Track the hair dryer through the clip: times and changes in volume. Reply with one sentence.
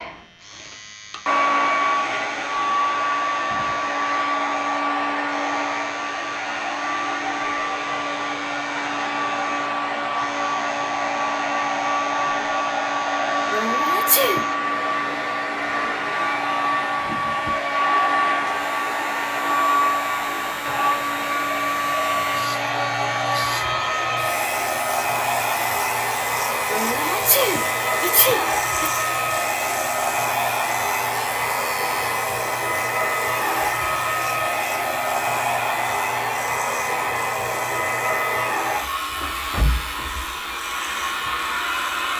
The hair dryer can be heard from 0.0 to 42.1 s, at a steady volume.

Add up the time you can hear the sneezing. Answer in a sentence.
You can hear the sneezing for 3 seconds altogether.